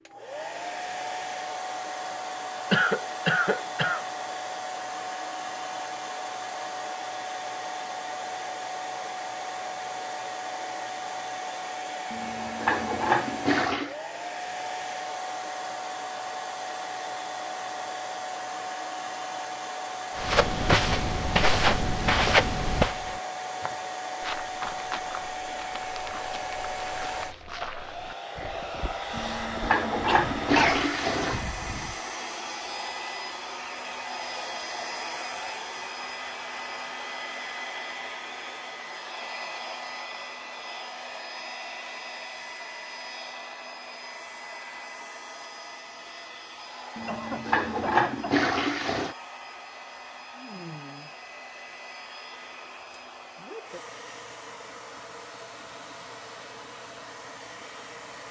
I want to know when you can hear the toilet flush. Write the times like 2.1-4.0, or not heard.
12.1-13.9, 29.1-31.4, 47.0-49.1.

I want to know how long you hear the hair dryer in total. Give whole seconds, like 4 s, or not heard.
58 s.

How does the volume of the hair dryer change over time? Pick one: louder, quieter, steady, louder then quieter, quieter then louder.
quieter.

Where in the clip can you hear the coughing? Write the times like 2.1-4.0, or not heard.
2.7-4.0, 30.1-30.9, 47.0-48.5.